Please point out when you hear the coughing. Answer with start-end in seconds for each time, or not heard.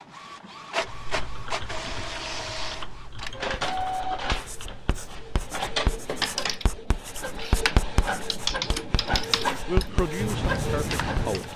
not heard.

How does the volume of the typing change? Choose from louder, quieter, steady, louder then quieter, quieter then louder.
louder.